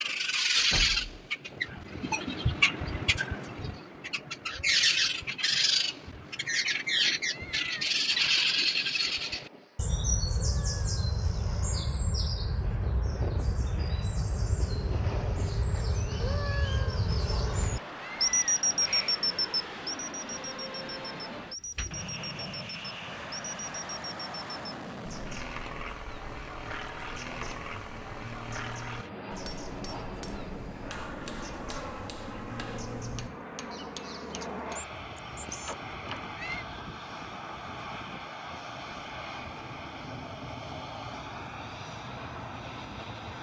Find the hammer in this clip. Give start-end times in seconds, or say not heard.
29.4-34.8.